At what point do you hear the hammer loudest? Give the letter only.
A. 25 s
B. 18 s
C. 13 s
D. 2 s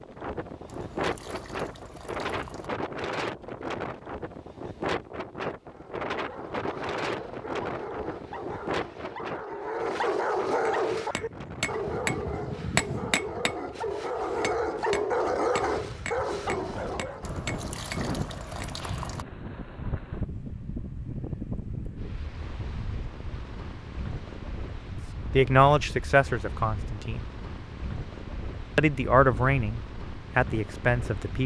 C.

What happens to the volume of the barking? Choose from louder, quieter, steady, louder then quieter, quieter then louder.
louder.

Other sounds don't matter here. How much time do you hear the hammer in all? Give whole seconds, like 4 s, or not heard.
8 s.